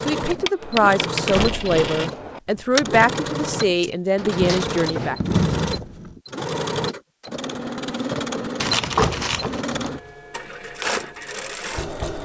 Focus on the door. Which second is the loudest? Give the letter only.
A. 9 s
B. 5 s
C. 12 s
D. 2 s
A.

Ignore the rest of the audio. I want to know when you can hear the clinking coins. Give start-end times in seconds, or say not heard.
0.4-2.4, 4.3-6.2, 8.6-9.6.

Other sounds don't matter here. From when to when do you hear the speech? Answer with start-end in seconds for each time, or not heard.
0.1-5.2.